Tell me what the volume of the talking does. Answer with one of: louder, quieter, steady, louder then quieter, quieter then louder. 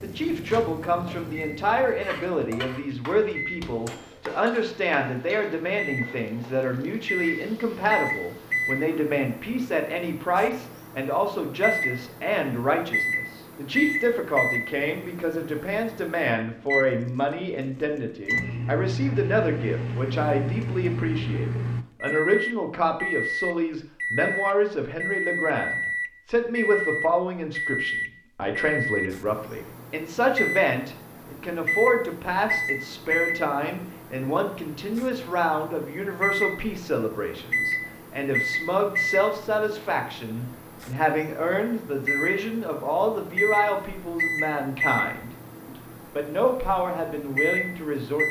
steady.